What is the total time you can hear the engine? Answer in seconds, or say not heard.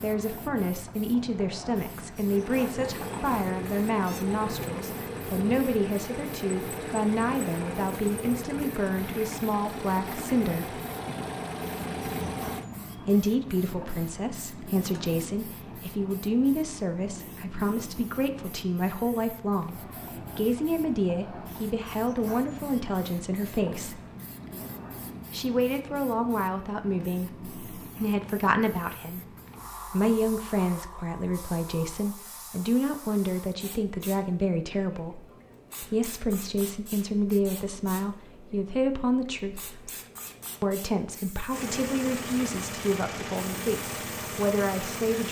14 s.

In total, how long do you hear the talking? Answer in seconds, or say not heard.
40 s.